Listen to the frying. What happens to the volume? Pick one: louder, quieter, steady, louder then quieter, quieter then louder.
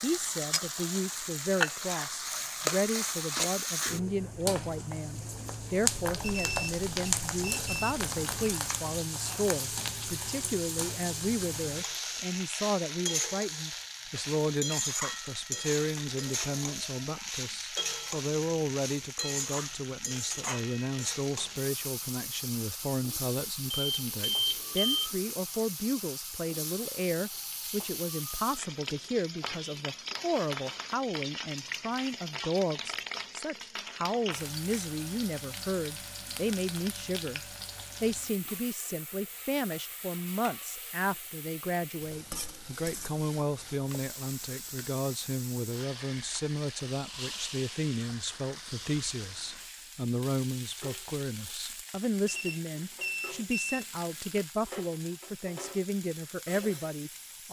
quieter.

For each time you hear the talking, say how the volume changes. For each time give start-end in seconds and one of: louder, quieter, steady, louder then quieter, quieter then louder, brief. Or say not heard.
0.0-37.4 steady
38.0-57.4 steady.